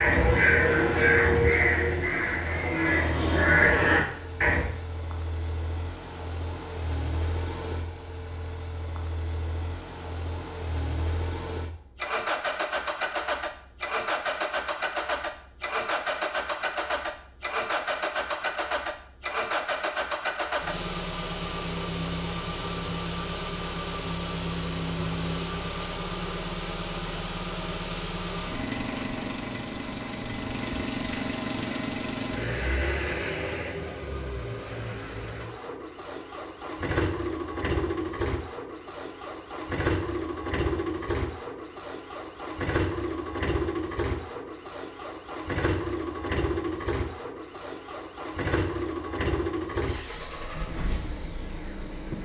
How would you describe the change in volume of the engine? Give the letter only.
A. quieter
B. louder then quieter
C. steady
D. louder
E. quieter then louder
D.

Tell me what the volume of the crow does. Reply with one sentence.
The volume of the crow goes down, then up.